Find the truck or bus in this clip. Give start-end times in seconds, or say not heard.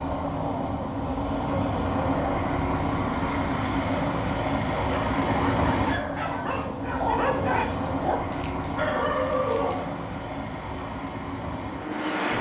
0.0-12.3.